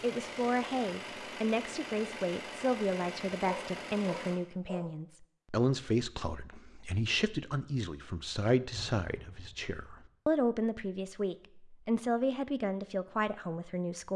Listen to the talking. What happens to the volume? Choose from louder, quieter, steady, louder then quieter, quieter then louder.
steady.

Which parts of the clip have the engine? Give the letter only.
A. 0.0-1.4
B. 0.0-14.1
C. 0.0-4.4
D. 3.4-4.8
C.